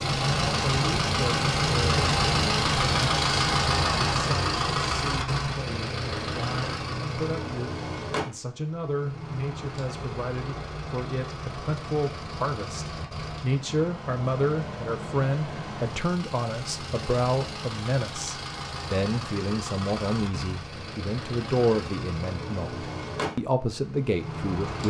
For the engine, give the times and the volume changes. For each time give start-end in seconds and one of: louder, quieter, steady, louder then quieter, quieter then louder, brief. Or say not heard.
0.0-24.8 quieter.